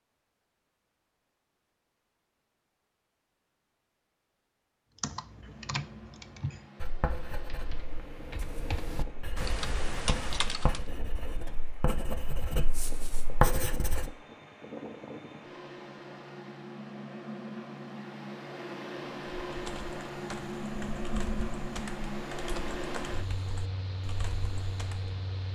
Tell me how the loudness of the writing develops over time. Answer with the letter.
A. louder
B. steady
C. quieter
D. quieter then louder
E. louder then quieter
A.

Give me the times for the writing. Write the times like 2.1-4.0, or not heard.
6.8-14.1.